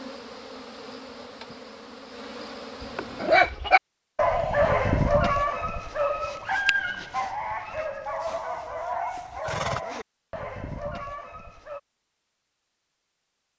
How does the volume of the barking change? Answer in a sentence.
The loudness of the barking goes down.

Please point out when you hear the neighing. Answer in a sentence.
You can hear the neighing from 2.8 to 3.4 s and from 8.2 to 9.8 s.